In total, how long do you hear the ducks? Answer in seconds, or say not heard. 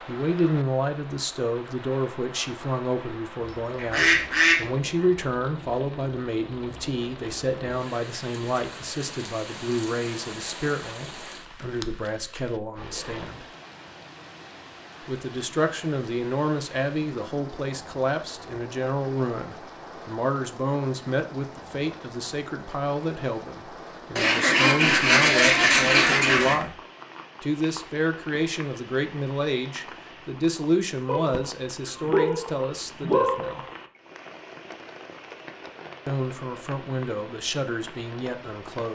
4 s.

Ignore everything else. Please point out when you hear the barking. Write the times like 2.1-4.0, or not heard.
3.4-4.8, 31.1-33.6.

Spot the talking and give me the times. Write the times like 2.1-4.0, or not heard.
0.1-13.4, 15.1-26.8, 27.4-33.6, 36.0-38.9.